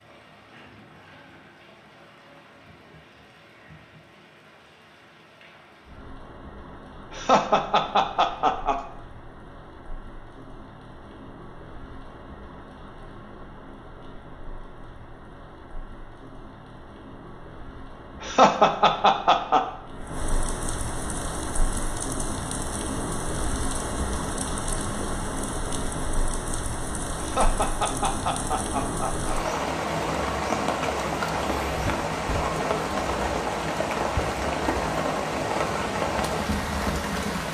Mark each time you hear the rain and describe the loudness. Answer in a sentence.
You can hear the rain from 0.0 to 37.4 s, getting louder.